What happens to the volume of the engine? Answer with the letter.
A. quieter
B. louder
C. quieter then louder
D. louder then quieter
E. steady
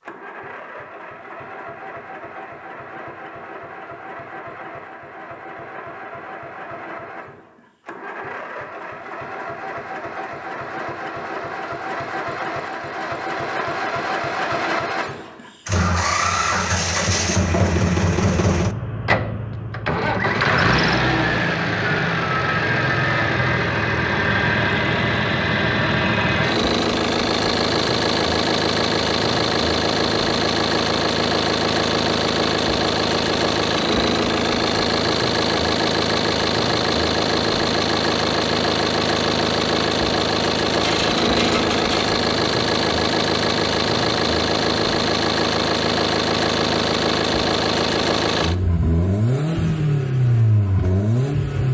B.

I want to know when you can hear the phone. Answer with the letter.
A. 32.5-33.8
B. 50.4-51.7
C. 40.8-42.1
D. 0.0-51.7
C.